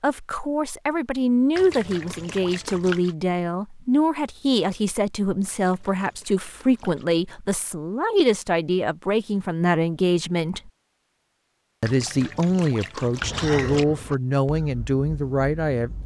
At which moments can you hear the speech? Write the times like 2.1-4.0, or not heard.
0.0-10.7, 11.8-16.0.